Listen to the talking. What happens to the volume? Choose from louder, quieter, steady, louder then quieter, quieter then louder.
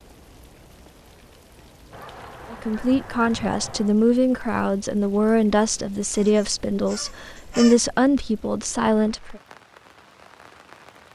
steady.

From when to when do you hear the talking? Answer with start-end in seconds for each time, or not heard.
2.5-9.4.